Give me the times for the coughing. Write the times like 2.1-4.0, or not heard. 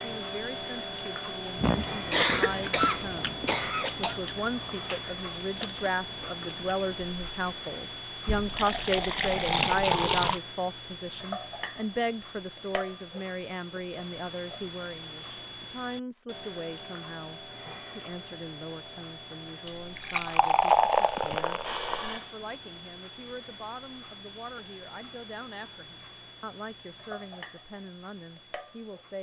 1.6-4.2, 21.1-22.4.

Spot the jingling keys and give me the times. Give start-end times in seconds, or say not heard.
not heard.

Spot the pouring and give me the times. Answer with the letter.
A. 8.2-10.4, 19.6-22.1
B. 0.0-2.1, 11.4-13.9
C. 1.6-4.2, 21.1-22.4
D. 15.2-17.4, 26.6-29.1
A.